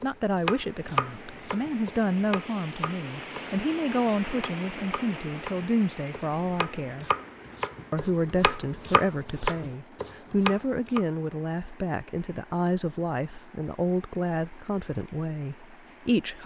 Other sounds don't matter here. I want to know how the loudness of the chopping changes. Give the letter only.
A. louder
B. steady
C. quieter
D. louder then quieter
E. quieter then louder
E.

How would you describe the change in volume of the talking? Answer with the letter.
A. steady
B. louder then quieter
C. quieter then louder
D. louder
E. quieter
A.